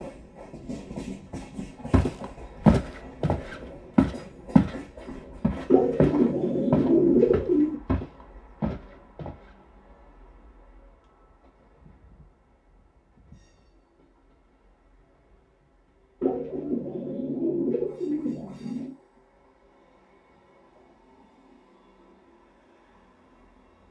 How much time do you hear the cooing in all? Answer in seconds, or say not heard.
5 s.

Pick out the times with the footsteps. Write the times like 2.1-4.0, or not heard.
1.9-4.8, 5.4-9.3.